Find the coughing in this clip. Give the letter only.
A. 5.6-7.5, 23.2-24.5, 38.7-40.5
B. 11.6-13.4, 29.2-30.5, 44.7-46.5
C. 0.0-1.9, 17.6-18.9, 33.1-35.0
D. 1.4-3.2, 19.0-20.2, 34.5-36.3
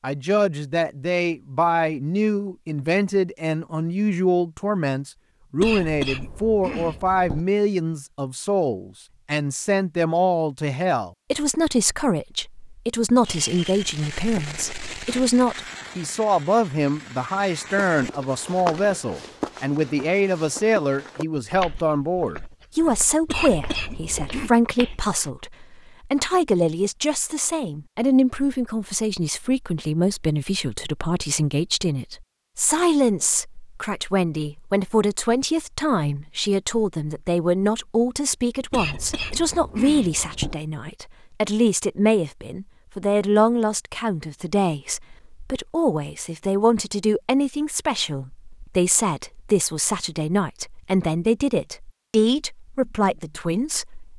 A.